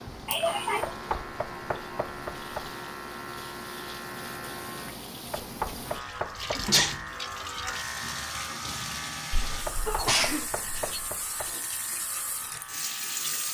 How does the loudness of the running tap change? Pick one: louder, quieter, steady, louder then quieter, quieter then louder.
louder.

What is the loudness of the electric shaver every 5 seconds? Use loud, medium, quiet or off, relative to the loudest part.
loud, loud, medium.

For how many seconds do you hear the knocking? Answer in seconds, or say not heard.
5 s.